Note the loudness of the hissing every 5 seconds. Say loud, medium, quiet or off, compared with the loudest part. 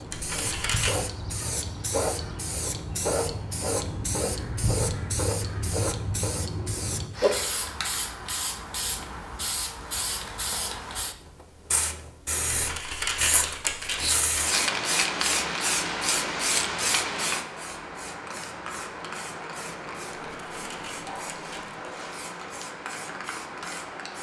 loud, loud, loud, loud, medium.